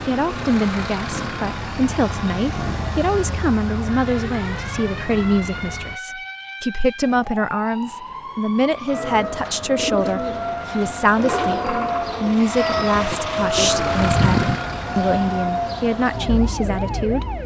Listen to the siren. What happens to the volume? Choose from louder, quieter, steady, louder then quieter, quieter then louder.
louder.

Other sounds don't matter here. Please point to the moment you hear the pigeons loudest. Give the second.
14 s.